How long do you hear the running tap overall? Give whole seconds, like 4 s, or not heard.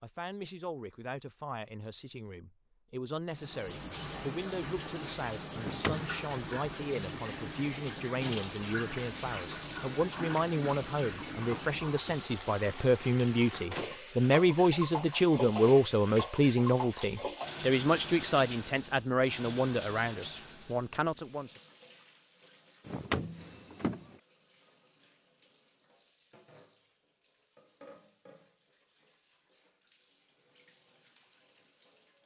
29 s.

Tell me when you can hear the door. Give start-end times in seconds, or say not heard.
5.5-6.2, 13.5-14.0, 22.9-24.1.